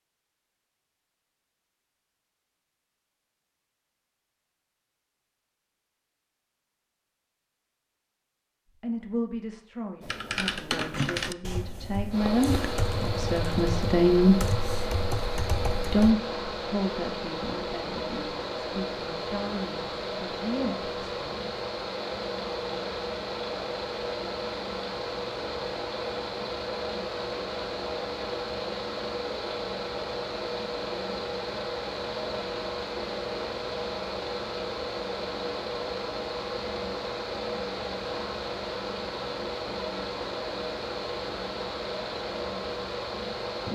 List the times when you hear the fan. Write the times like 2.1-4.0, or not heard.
12.1-43.6.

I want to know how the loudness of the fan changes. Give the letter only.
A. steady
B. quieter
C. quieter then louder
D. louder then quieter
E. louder
A.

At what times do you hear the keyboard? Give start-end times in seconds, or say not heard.
10.0-16.1.